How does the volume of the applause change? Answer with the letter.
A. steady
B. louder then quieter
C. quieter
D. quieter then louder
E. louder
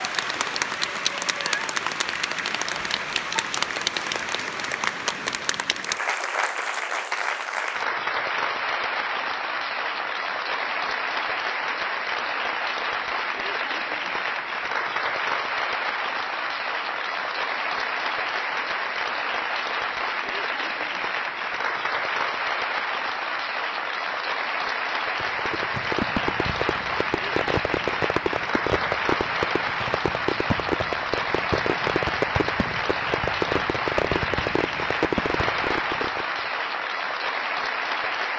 A.